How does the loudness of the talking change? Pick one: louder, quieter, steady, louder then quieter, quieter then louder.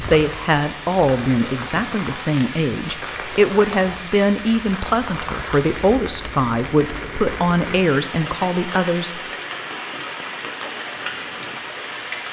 steady.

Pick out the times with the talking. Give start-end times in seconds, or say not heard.
0.0-9.2.